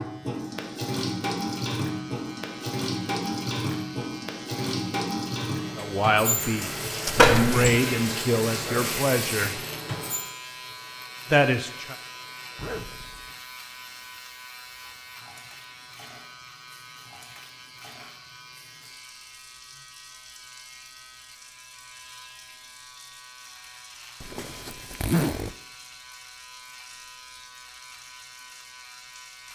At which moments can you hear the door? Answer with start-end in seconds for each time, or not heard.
7.2-7.8.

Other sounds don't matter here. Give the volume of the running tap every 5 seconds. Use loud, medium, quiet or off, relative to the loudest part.
loud, loud, quiet, quiet, quiet, quiet.